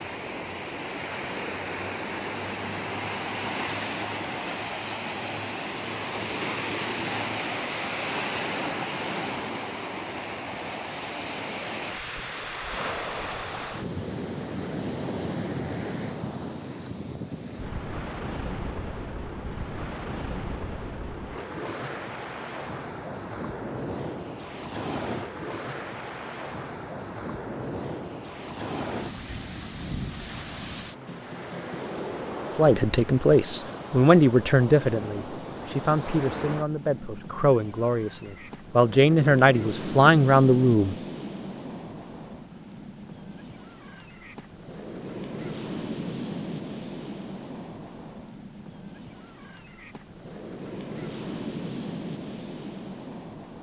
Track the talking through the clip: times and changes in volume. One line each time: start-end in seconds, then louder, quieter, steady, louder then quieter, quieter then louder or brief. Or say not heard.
32.5-41.0 quieter then louder.